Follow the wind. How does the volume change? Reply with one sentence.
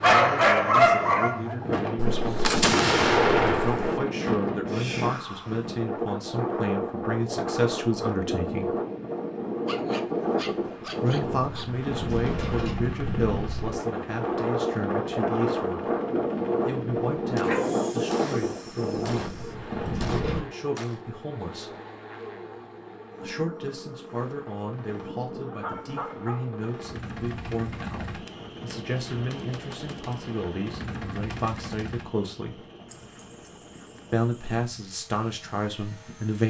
The loudness of the wind stays about the same.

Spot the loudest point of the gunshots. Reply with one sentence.
The loudest moment of the gunshots is at 3 seconds.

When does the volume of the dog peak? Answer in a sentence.
The volume of the dog peaks at 1 second.